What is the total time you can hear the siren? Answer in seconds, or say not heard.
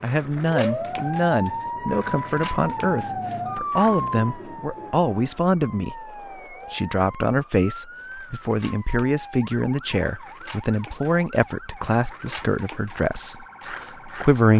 14 s.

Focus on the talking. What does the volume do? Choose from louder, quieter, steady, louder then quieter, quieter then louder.
steady.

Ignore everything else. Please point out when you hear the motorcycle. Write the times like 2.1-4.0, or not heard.
not heard.